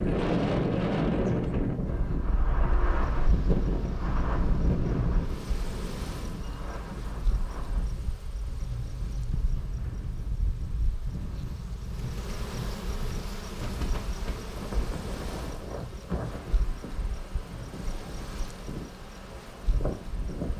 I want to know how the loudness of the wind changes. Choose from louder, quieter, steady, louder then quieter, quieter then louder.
quieter.